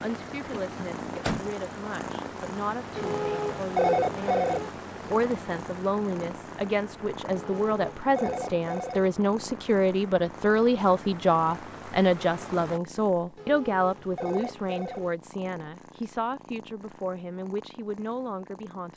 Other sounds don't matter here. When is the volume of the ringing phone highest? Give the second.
4 s.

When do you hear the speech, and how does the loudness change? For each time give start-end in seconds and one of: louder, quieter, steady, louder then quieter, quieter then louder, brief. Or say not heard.
0.0-18.9 louder then quieter.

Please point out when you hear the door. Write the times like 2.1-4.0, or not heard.
0.5-1.5.